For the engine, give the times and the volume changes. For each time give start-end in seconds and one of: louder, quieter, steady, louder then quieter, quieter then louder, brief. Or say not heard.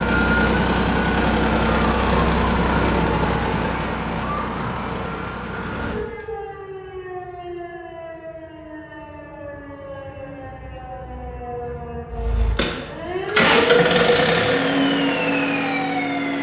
0.0-6.5 quieter
12.1-16.3 louder then quieter.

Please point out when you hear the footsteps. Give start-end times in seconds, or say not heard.
not heard.